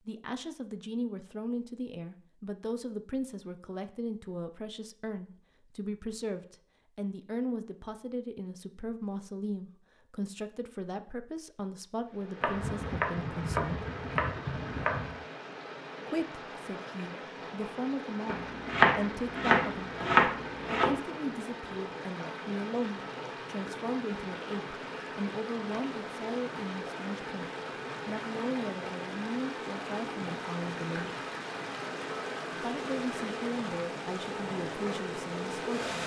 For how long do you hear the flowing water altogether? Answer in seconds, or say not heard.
24 s.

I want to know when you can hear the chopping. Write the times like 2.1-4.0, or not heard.
12.4-15.2, 18.2-21.0.